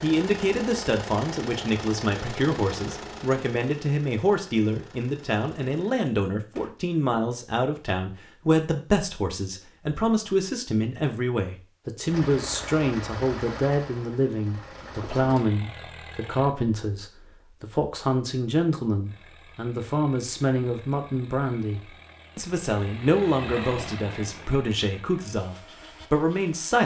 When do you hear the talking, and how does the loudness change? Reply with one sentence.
You can hear the talking from 0.0 to 26.8 s, at a steady volume.